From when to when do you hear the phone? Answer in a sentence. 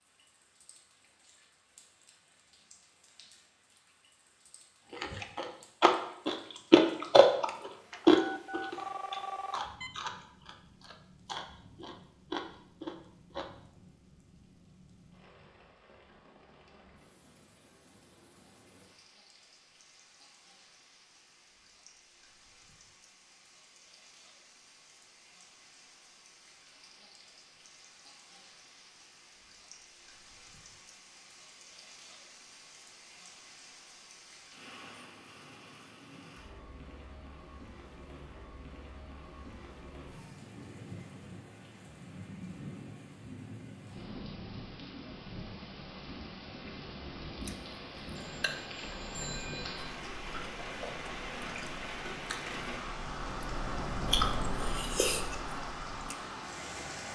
The phone can be heard from 8.2 to 9.9 s and from 48.1 to 49.9 s.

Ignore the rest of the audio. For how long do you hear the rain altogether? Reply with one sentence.
You can hear the rain for 57 seconds altogether.